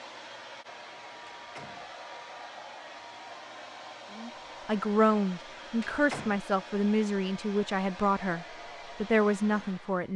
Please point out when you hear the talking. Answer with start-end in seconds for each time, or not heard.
4.2-10.1.